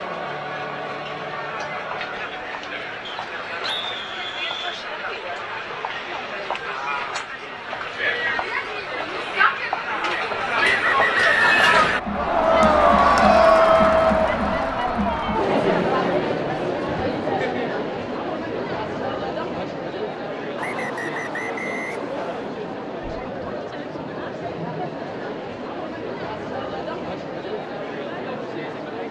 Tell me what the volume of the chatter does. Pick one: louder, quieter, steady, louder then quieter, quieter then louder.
louder then quieter.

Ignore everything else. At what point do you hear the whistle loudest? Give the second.
11 s.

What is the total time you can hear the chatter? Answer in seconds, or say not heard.
29 s.